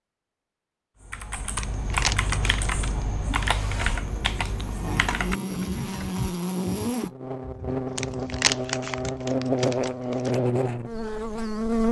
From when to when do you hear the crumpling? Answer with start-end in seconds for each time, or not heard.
1.6-3.0, 8.0-10.3.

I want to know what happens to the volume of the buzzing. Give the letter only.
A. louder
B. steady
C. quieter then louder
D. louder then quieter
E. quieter
A.